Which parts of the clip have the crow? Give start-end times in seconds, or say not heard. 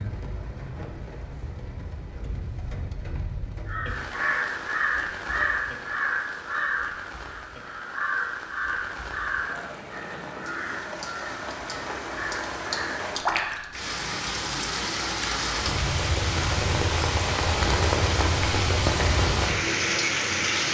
3.6-13.9.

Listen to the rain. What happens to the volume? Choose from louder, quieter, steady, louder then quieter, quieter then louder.
louder.